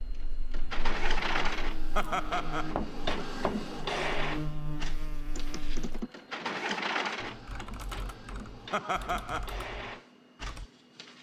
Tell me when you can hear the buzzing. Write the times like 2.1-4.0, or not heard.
0.0-6.0.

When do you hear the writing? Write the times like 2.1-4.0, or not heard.
not heard.